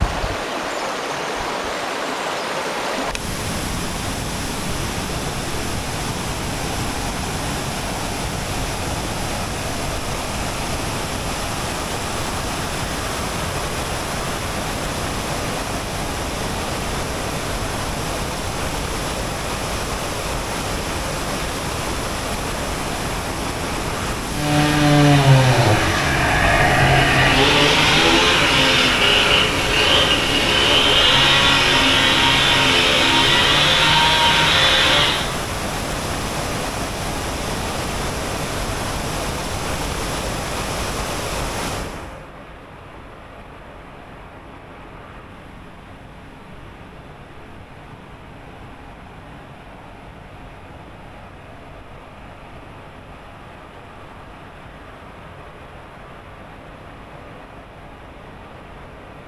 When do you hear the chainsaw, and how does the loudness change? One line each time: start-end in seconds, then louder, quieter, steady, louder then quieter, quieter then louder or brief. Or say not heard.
24.3-35.2 steady.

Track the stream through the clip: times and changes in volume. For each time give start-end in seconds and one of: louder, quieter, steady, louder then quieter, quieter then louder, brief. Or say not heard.
0.0-59.2 quieter.